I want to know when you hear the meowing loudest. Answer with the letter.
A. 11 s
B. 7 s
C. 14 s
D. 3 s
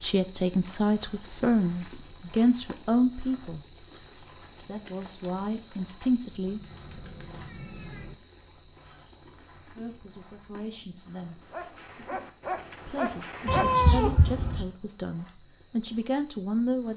C.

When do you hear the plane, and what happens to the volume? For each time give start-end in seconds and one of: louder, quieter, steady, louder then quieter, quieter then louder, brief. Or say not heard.
not heard.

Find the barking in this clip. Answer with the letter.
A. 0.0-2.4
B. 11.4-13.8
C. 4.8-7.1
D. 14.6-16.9
B.